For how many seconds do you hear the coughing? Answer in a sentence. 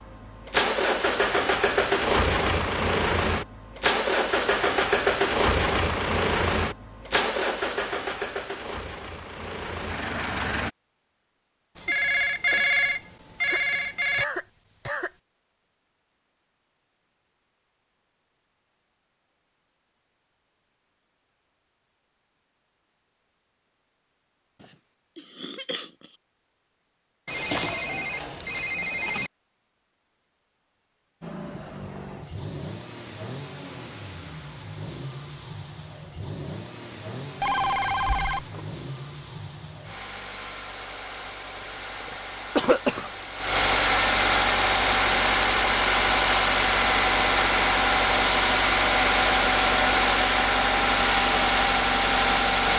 You can hear the coughing for 4 seconds altogether.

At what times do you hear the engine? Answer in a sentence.
You can hear the engine from 0.0 to 10.7 s and from 31.2 to 52.7 s.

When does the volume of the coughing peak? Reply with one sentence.
The volume of the coughing peaks at 43 seconds.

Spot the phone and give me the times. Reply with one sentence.
You can hear the phone from 11.8 to 14.2 s, from 27.2 to 29.3 s and from 37.4 to 38.6 s.